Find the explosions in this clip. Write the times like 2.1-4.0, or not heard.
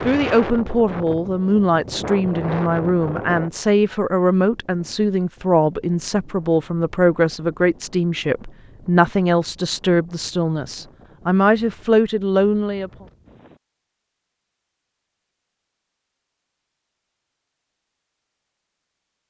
not heard.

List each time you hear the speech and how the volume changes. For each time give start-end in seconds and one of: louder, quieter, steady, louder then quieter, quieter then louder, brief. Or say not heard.
0.0-12.9 steady.